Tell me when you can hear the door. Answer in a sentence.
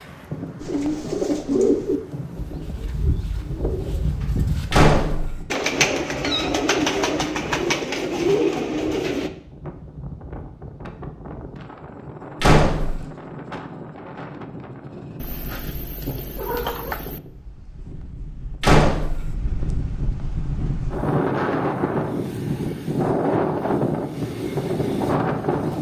You can hear the door from 4.7 to 5.4 s, from 12.4 to 13.0 s and from 18.6 to 19.4 s.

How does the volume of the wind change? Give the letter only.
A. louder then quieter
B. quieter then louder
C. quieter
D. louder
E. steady
D.